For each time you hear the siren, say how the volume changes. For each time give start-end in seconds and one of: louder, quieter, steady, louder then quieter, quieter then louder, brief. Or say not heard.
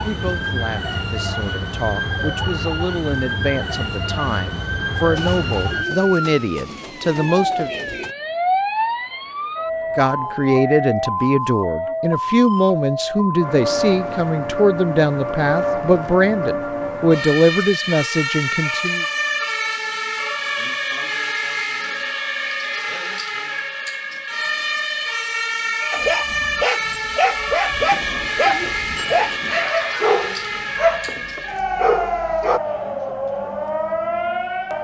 0.0-34.7 steady.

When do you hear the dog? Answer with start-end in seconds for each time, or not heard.
25.9-32.6.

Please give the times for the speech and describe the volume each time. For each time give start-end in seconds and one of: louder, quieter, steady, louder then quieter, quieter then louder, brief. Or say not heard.
0.0-7.8 louder
9.9-19.1 steady.